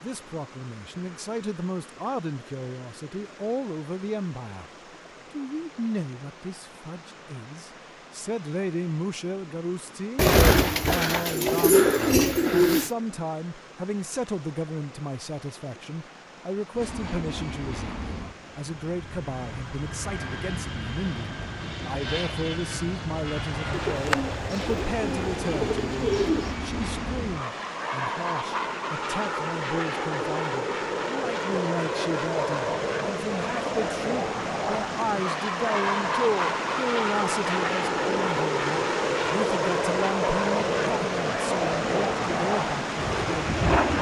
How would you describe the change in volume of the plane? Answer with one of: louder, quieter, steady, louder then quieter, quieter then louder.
louder.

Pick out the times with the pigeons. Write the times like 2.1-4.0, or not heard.
10.2-12.9, 23.7-26.6.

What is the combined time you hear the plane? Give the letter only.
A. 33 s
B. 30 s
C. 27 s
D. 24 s
C.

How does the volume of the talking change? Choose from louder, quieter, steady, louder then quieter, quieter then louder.
steady.